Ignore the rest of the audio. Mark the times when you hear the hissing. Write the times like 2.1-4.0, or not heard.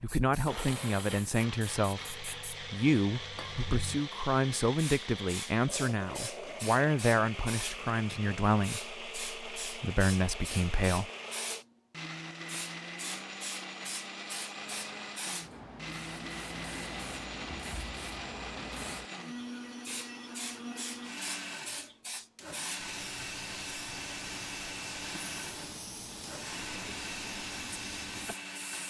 0.0-28.8.